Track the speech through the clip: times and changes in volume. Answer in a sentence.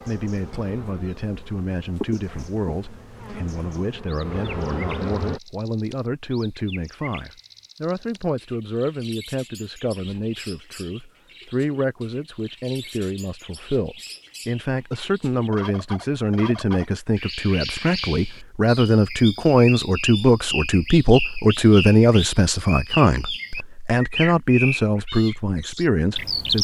The speech can be heard from 0.1 to 26.5 s, getting louder.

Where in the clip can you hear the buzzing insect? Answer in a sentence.
The buzzing insect can be heard from 0.0 to 5.4 s.